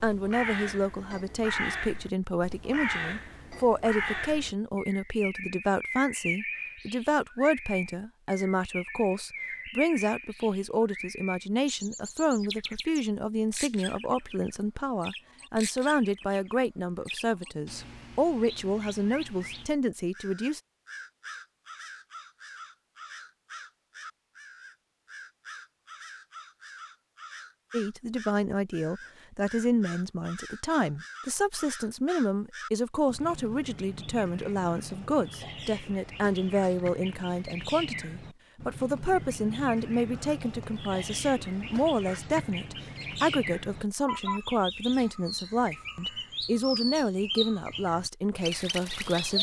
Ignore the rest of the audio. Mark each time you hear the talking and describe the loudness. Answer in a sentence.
You can hear the talking from 0.0 to 20.6 s, at a steady volume; and from 27.7 to 49.3 s, at a steady volume.